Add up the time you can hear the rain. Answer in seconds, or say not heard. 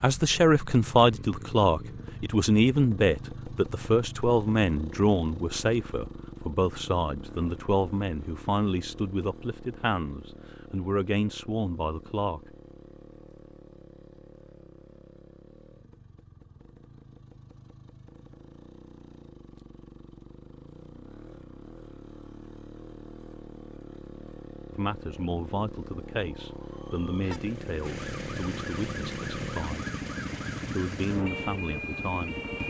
not heard.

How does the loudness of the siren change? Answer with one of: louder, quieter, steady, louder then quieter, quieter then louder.
louder.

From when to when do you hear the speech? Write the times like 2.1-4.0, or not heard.
0.0-12.6, 24.7-29.9, 30.6-32.4.